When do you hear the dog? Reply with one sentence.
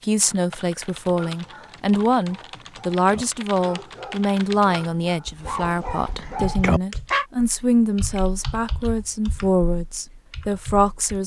The dog can be heard from 1.1 to 7.2 s.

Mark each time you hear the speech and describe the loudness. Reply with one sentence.
You can hear the speech from 0.1 to 11.2 s, at a steady volume.